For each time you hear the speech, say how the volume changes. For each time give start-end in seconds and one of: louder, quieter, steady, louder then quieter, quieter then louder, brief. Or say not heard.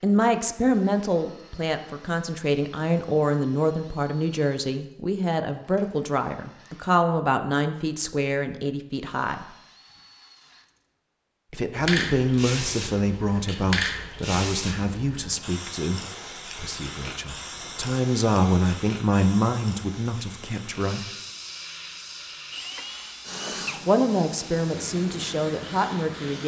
0.0-9.4 steady
11.5-21.1 quieter then louder
23.9-26.4 brief.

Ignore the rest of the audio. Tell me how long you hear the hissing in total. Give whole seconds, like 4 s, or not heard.
15 s.